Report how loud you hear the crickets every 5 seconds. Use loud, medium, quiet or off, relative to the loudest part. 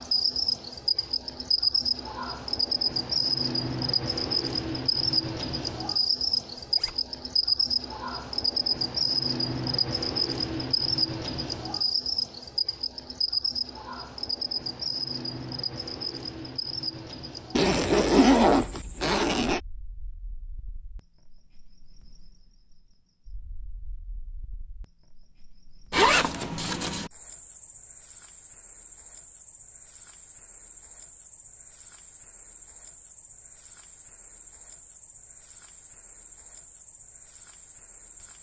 loud, loud, loud, medium, quiet, quiet, quiet, quiet.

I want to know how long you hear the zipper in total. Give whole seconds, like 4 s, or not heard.
4 s.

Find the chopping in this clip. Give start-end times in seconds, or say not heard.
not heard.